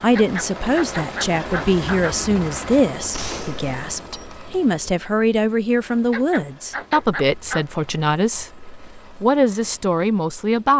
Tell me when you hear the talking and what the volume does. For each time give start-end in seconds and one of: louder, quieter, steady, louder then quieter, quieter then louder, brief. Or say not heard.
0.0-10.7 steady.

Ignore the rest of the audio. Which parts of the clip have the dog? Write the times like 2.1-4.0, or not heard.
0.1-2.1, 6.1-7.7.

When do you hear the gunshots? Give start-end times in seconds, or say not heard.
3.1-4.4.